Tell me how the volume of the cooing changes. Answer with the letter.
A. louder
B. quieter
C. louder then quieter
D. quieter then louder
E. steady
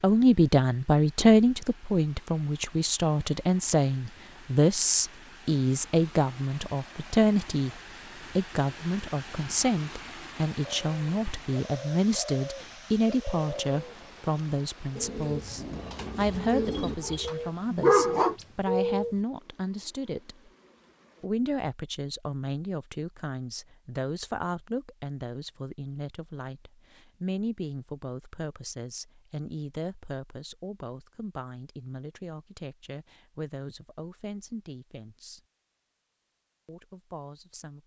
A.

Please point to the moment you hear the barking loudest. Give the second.
18 s.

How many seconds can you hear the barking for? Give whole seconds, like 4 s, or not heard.
2 s.